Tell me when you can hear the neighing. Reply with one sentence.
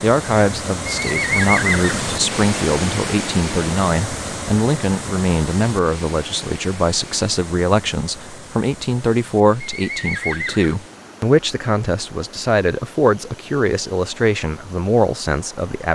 You can hear the neighing from 0.9 to 2.0 s and from 9.6 to 10.8 s.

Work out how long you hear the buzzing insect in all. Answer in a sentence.
The buzzing insect can't be heard in this clip.